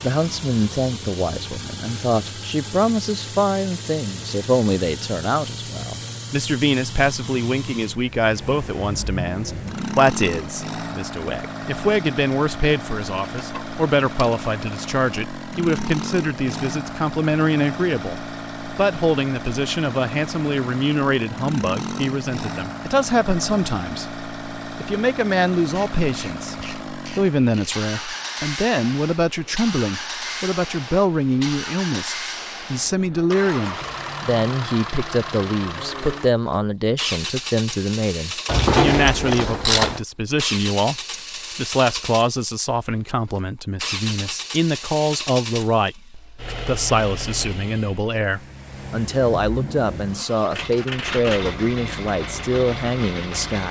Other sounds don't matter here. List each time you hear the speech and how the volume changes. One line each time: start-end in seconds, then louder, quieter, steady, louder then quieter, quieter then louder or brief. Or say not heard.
0.0-53.6 steady.